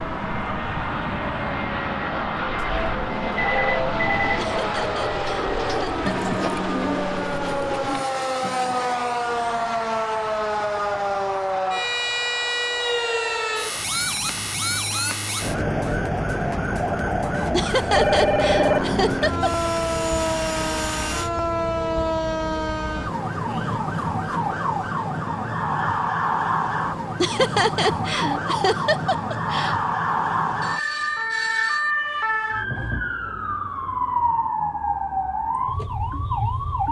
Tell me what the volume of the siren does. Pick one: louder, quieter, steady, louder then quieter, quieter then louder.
steady.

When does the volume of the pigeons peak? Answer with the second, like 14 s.
6 s.